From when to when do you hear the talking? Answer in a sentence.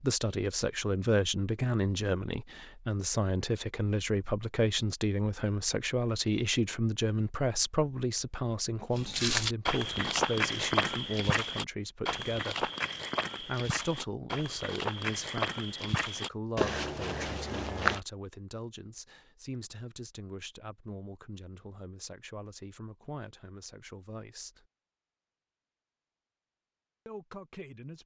The talking can be heard from 0.0 to 12.7 s, from 13.4 to 24.6 s and from 27.1 to 28.0 s.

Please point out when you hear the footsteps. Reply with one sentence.
The footsteps can be heard from 8.9 to 18.0 s.